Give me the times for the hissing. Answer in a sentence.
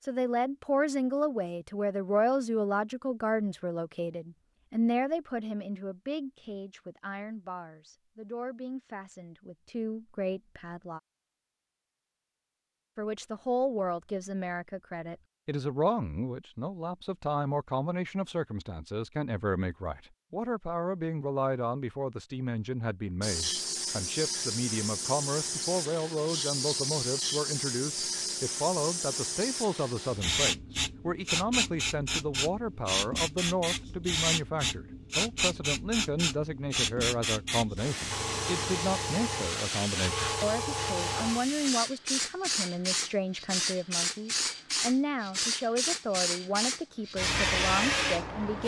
The hissing can be heard from 23.2 to 48.6 s.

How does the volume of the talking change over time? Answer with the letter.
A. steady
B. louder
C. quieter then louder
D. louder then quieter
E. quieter
A.